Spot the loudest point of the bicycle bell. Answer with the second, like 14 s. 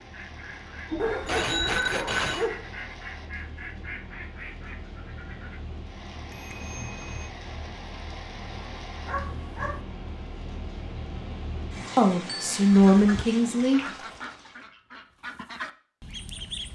2 s.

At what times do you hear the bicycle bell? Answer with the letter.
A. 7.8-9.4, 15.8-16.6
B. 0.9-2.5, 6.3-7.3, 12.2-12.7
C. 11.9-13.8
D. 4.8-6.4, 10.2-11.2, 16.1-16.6
B.